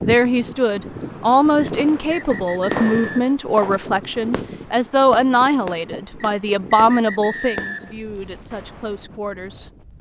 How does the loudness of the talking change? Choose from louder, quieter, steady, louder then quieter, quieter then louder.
quieter.